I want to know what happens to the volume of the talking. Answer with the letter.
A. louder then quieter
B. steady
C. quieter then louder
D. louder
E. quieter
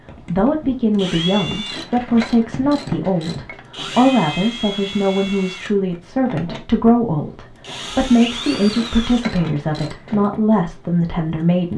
B.